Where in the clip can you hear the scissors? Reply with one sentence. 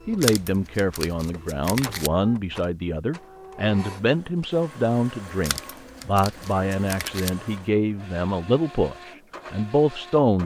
You can hear the scissors from 0.2 to 2.1 s and from 5.4 to 7.3 s.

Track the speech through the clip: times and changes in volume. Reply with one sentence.
The speech can be heard from 0.1 to 10.4 s, at a steady volume.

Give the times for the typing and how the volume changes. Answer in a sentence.
The typing can't be heard in this clip.